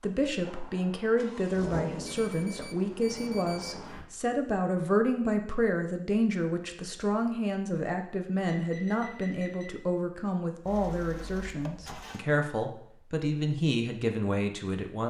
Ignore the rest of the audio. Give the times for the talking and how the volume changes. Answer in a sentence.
You can hear the talking from 0.0 to 15.0 s, at a steady volume.